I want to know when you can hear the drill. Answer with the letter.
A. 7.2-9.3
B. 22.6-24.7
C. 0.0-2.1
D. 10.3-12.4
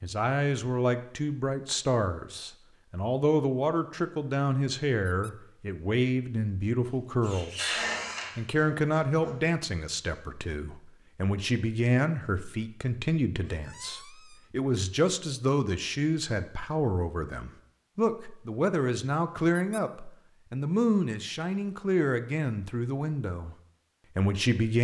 A.